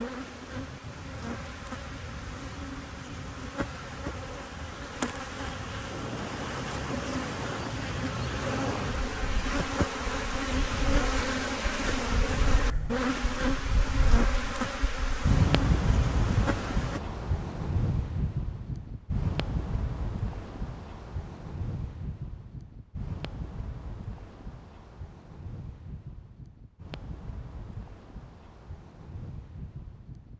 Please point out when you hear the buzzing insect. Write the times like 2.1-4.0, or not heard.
0.0-17.0.